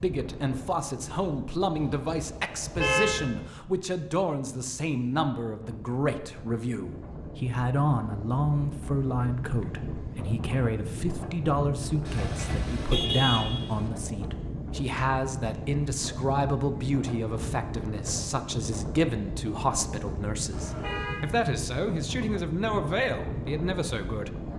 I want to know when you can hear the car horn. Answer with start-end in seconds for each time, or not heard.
1.8-3.5, 12.1-13.9, 20.5-21.2.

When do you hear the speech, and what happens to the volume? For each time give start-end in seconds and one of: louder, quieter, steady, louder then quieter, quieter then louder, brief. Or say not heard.
0.0-24.4 steady.